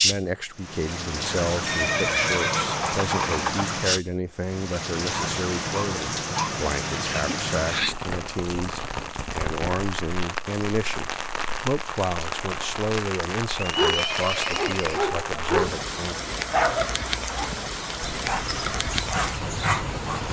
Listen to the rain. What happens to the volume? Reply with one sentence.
The loudness of the rain stays about the same.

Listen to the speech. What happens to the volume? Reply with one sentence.
The volume of the speech stays about the same.